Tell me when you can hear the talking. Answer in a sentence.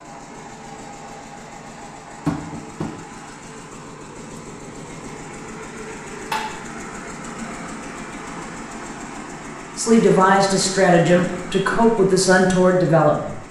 The talking can be heard from 9.8 to 13.4 s.